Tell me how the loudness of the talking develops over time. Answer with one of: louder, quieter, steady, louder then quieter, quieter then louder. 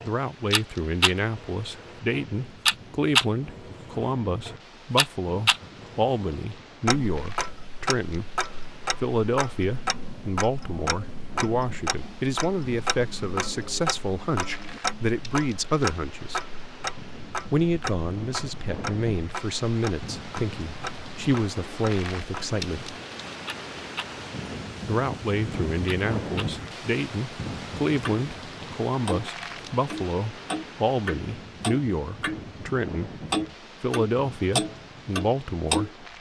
steady.